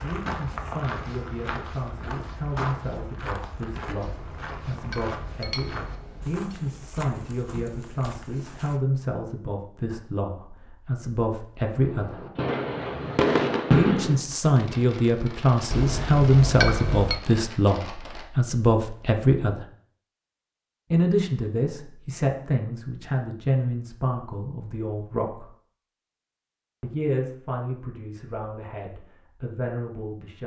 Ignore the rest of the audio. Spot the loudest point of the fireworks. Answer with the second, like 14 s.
14 s.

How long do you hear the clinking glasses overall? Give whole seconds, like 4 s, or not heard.
4 s.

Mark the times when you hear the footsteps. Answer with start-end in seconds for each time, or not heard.
0.0-8.8.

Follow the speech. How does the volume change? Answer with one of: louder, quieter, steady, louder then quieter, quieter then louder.
louder then quieter.